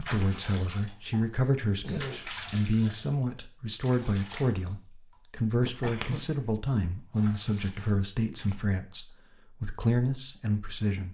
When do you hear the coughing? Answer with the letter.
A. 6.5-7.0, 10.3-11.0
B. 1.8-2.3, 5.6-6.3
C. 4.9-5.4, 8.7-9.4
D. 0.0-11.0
B.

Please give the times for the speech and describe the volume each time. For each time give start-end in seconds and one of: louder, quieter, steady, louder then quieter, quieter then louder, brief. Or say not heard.
0.0-11.0 steady.